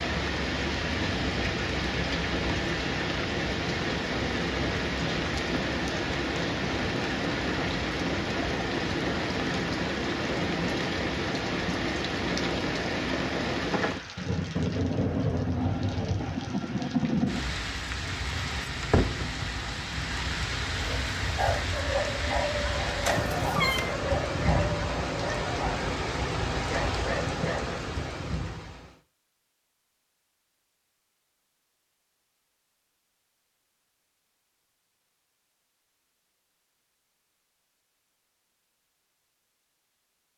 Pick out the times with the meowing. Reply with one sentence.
The meowing can be heard from 23.1 to 23.9 s.